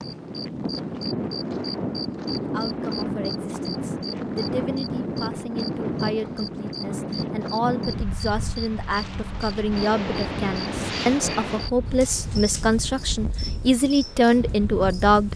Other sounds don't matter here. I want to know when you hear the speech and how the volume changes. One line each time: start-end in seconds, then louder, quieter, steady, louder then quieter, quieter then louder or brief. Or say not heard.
2.5-15.3 louder.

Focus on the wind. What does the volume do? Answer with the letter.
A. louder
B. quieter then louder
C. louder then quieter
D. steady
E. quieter
E.